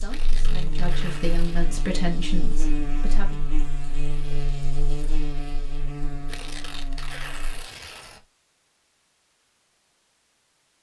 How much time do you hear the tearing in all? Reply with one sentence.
The tearing can be heard for 4 seconds in total.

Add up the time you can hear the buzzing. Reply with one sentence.
You can hear the buzzing for 8 seconds altogether.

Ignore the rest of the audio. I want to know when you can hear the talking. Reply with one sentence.
The talking can be heard from 0.0 to 3.5 s.